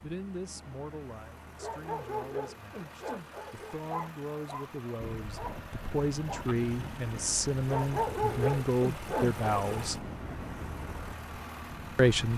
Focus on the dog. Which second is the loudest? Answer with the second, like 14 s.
8 s.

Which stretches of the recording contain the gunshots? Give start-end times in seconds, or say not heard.
not heard.